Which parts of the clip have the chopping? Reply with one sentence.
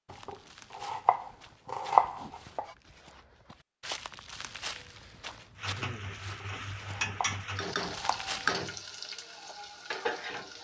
You can hear the chopping from 0.1 to 2.7 s and from 6.2 to 8.4 s.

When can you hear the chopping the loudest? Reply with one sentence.
The loudest moment of the chopping is at 2 seconds.